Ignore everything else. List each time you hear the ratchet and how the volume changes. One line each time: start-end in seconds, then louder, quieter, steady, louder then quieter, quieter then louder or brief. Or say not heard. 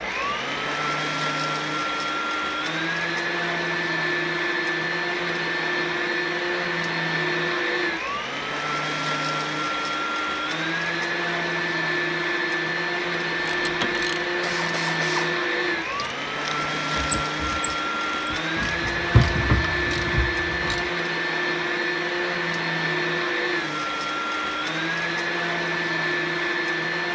13.4-20.9 quieter then louder.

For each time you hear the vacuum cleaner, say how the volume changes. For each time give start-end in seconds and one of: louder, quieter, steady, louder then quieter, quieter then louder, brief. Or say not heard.
0.0-27.1 steady.